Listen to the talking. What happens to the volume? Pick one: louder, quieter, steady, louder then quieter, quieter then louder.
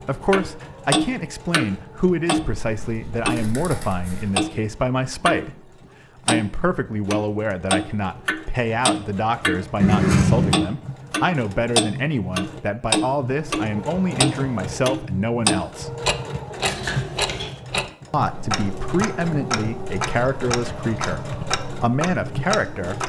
steady.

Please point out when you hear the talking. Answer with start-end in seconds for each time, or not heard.
0.1-15.9, 18.1-23.0.